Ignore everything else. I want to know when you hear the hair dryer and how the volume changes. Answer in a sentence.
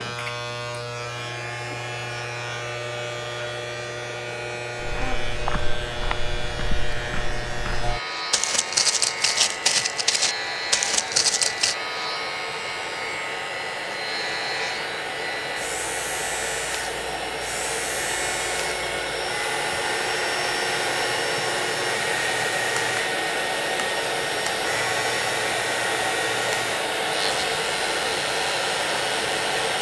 The hair dryer can be heard from 0.0 to 29.7 s, getting louder.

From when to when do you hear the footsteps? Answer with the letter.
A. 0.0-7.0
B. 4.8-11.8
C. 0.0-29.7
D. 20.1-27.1
B.